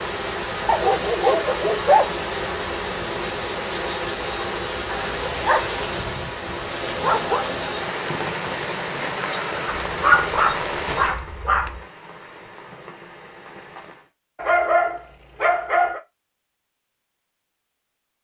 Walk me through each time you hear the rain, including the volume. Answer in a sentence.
The rain can be heard from 0.0 to 14.1 s, getting quieter.